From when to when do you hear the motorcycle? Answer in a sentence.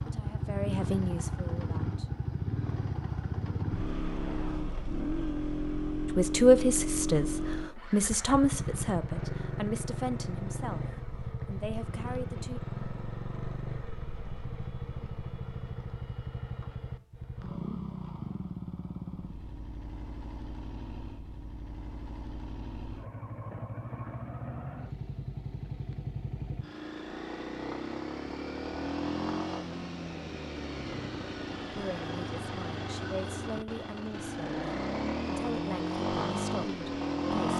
The motorcycle can be heard from 0.0 to 37.5 s.